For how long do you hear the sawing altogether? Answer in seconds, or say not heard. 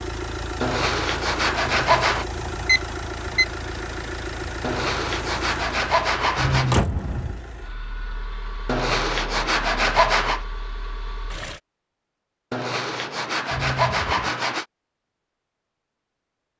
8 s.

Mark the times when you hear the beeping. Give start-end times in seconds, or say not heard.
1.6-3.5, 6.3-7.4, 13.5-14.3.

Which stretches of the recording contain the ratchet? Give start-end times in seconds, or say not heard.
not heard.